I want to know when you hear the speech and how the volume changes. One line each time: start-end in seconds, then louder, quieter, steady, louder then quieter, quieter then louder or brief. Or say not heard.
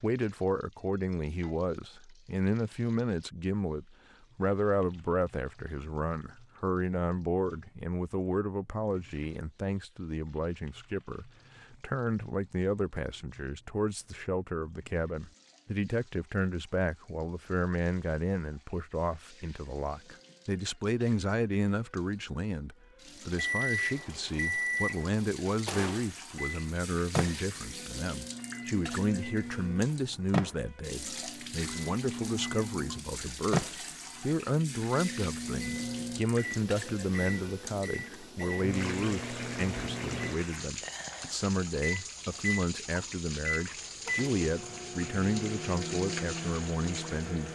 0.0-47.5 steady.